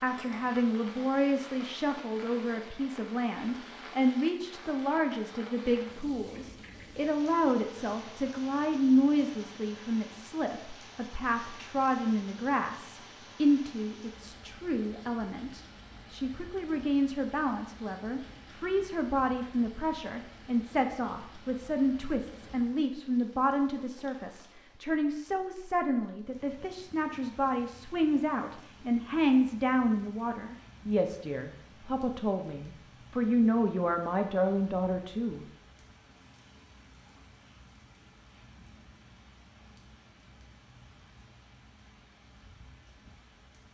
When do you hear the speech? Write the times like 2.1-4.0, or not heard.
0.0-35.5.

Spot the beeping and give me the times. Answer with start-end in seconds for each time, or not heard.
not heard.